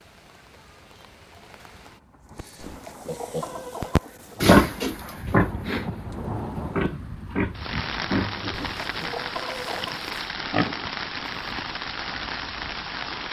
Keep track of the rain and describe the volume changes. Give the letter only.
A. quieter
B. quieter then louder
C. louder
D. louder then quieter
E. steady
C.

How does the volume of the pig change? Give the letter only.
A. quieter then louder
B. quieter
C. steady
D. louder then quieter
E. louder
B.